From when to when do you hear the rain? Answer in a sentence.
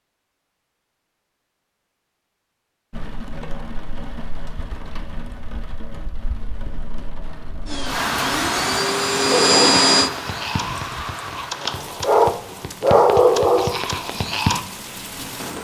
You can hear the rain from 2.9 to 15.5 s.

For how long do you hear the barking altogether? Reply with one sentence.
The barking can be heard for 5 seconds in total.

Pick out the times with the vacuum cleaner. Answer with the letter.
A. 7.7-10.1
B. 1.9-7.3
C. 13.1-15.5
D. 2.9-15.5
A.